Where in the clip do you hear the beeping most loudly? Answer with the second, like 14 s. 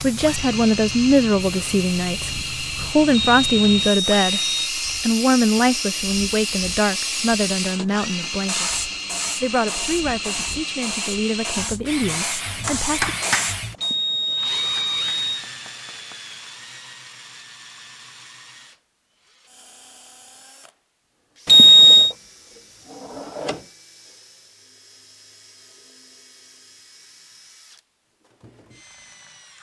22 s.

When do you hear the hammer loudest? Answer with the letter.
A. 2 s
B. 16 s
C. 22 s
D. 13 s
D.